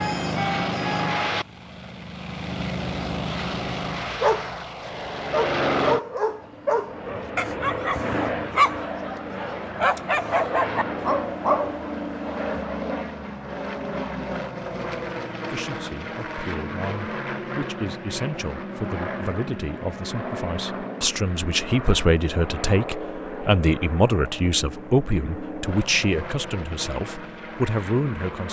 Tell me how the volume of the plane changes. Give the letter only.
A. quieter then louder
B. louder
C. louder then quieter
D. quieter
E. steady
D.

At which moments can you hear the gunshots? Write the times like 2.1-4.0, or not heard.
not heard.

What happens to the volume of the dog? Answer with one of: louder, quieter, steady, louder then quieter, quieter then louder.
steady.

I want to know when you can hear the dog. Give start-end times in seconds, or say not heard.
4.2-12.7.